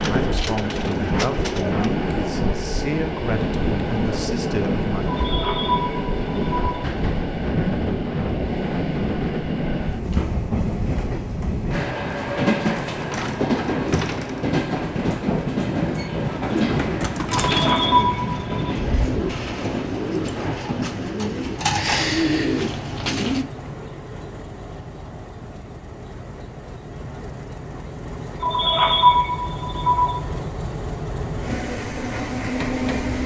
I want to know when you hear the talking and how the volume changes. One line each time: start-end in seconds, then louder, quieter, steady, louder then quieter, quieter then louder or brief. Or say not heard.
0.1-5.1 steady.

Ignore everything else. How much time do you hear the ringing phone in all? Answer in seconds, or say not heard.
5 s.